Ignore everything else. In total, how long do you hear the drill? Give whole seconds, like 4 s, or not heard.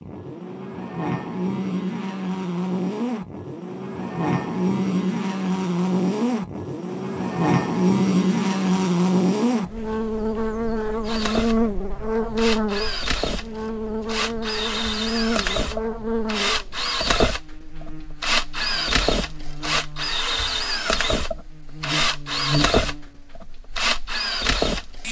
14 s.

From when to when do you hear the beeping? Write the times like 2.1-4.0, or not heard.
not heard.